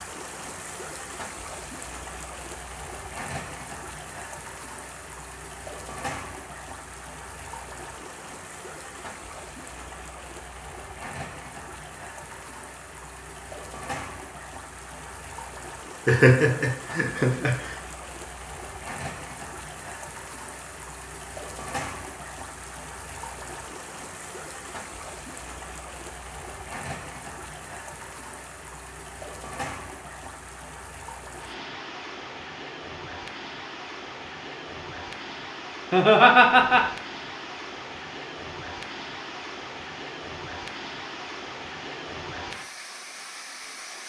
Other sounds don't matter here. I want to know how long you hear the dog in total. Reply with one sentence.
The dog can't be heard in this clip.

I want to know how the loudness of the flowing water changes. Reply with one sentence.
The loudness of the flowing water stays about the same.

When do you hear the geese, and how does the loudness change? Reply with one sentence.
The geese can't be heard in this clip.